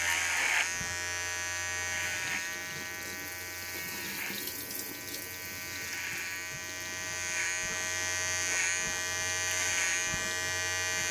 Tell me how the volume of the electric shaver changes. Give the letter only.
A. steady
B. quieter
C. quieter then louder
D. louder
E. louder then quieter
C.